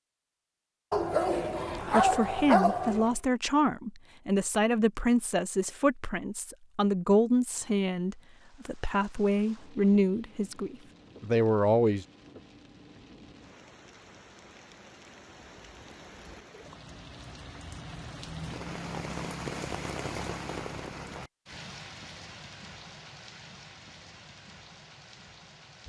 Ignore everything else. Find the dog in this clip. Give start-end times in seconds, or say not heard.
0.9-3.1.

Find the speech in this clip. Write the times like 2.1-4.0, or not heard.
1.9-12.1.